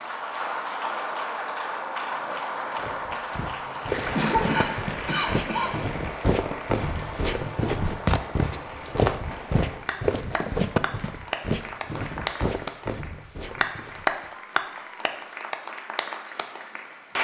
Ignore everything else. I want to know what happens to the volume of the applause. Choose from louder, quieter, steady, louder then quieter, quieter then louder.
quieter then louder.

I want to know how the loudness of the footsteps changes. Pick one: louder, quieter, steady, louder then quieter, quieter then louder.
louder then quieter.